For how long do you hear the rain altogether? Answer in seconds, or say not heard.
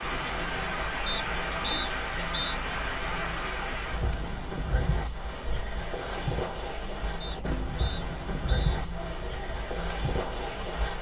11 s.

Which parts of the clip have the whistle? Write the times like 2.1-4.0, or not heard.
1.1-2.5, 7.2-8.8.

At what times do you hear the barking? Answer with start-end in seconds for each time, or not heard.
not heard.